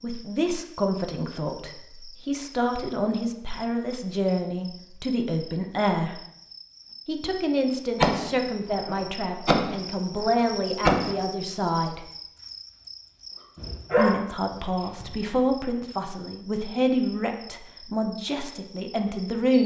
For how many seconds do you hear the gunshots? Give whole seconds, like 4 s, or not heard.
3 s.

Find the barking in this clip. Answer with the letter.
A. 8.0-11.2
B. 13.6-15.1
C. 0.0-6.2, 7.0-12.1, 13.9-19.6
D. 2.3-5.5
B.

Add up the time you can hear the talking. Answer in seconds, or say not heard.
17 s.